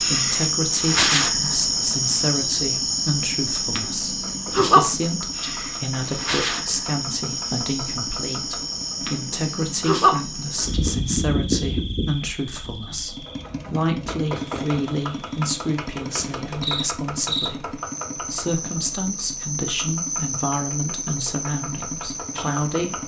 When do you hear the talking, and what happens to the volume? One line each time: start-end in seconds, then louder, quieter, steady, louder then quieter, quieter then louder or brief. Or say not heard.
0.0-23.0 steady.